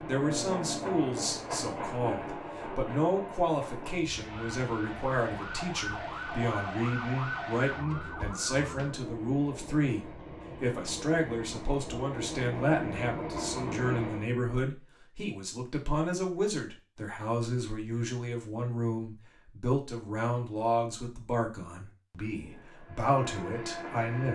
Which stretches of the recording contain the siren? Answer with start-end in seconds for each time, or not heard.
4.0-9.0.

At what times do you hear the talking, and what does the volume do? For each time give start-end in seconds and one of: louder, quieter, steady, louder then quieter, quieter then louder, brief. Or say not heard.
0.1-24.2 steady.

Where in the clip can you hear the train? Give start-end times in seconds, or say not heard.
0.0-14.3, 22.2-24.2.